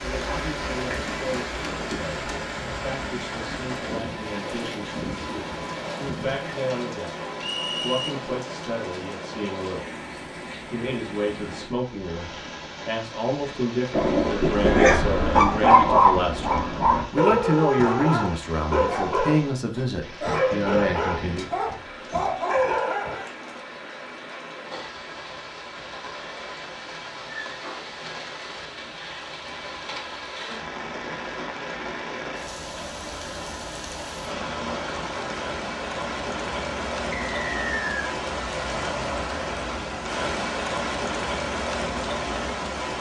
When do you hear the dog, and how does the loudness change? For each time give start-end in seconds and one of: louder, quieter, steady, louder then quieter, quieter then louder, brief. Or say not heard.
13.9-23.3 quieter.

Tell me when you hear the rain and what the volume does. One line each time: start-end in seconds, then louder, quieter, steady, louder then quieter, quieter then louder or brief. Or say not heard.
0.0-42.9 quieter then louder.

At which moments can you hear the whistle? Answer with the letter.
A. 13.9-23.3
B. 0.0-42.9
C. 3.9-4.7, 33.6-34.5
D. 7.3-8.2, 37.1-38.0
D.